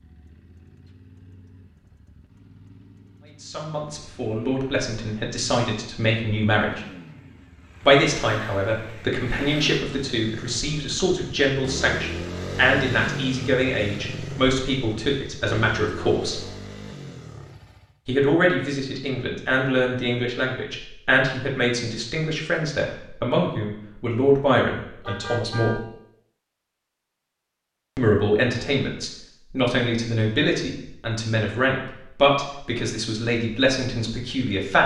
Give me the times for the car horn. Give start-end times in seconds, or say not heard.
25.1-25.8.